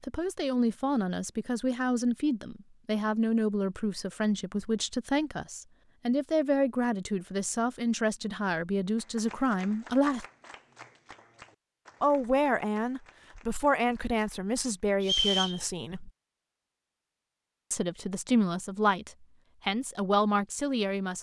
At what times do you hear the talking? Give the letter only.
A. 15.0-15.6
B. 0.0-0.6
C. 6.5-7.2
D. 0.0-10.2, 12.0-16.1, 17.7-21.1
D.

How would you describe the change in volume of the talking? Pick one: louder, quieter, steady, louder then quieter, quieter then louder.
steady.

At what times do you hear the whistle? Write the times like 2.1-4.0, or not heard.
15.0-15.6.